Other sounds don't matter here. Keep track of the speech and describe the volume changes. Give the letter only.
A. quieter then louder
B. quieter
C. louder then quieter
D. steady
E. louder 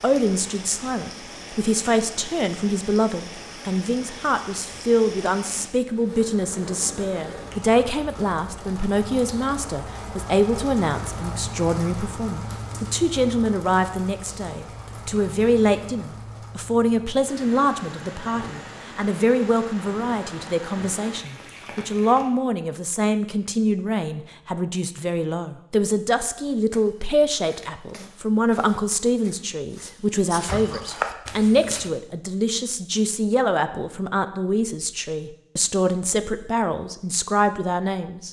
D.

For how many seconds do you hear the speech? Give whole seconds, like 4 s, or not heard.
38 s.